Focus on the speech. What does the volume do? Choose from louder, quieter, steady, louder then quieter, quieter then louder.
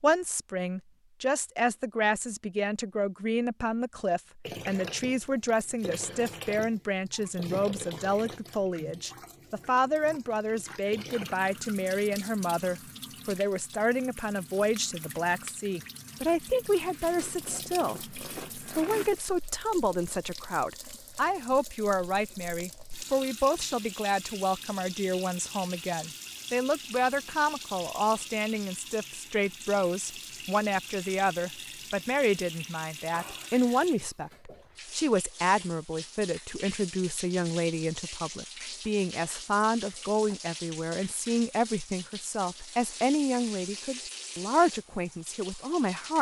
steady.